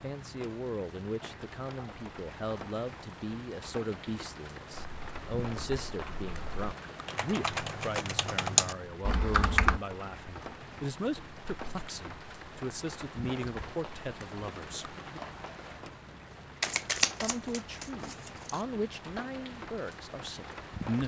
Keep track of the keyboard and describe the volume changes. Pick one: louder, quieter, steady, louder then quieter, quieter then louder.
louder.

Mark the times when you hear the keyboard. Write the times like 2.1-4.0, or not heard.
4.7-9.8.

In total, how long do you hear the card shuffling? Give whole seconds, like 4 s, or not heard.
2 s.